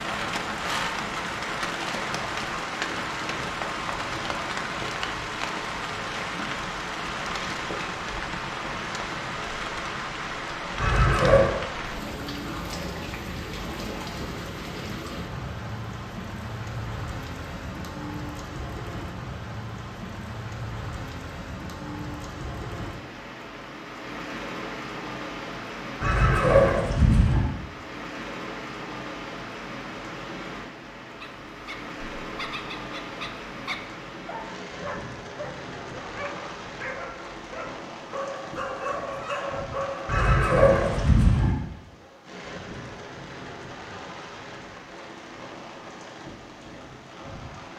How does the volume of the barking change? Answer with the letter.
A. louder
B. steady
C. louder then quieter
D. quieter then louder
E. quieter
A.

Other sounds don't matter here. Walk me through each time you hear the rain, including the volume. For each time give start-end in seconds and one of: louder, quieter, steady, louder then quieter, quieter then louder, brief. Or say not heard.
0.0-47.7 quieter.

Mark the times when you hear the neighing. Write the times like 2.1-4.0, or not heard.
10.8-11.6, 26.0-27.4, 40.0-41.5.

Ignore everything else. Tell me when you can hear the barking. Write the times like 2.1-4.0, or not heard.
31.2-40.4.